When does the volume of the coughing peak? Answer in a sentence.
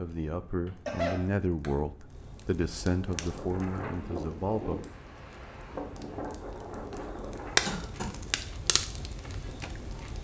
The loudest moment of the coughing is at 1 second.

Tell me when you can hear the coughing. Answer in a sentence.
The coughing can be heard from 0.7 to 1.2 s and from 7.7 to 8.2 s.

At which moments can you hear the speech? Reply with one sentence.
You can hear the speech from 0.0 to 4.8 s.